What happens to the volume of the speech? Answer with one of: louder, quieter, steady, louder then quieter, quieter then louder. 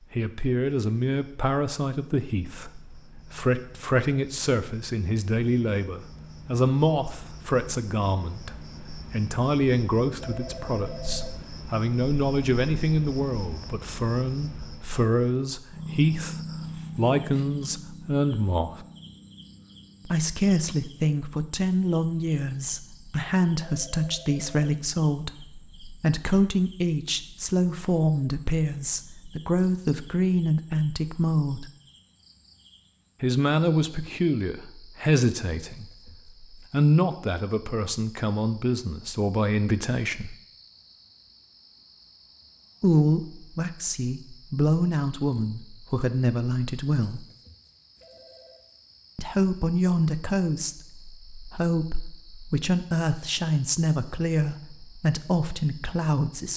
steady.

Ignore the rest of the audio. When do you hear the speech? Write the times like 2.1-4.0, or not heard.
0.1-18.9, 20.1-31.7, 33.2-40.4, 42.8-47.2, 49.1-56.5.